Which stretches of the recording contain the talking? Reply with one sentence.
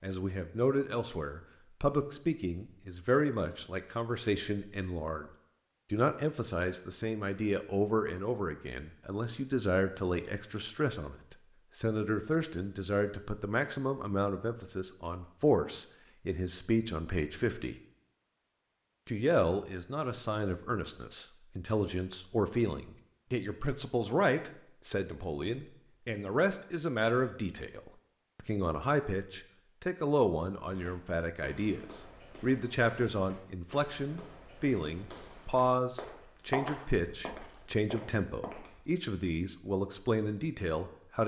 You can hear the talking from 0.0 to 5.3 s, from 5.9 to 17.8 s and from 19.1 to 41.2 s.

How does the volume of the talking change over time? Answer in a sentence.
The volume of the talking stays about the same.